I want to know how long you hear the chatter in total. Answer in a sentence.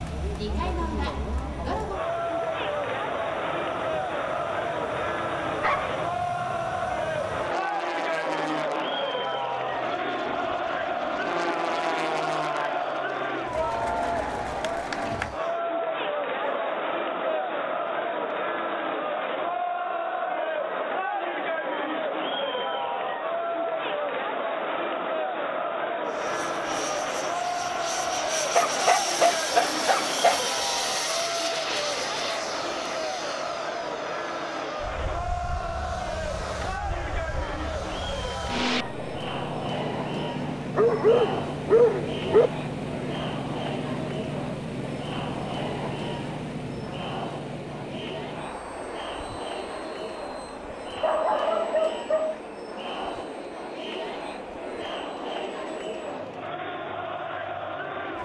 The chatter can be heard for 58 seconds in total.